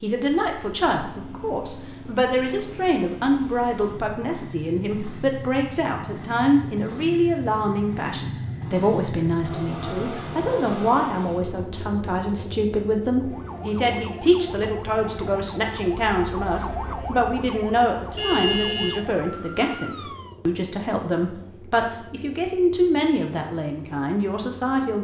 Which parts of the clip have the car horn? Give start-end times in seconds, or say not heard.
18.1-19.1.